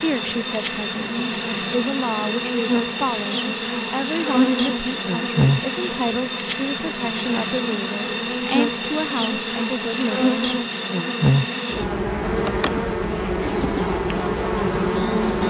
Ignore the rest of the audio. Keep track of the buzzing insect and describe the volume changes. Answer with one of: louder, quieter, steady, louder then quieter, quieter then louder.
steady.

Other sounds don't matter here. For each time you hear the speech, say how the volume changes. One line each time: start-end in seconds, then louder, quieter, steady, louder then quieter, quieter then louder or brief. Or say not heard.
0.0-10.5 steady.